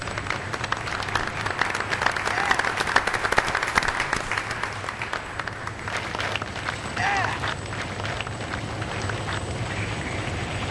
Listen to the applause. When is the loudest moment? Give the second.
3 s.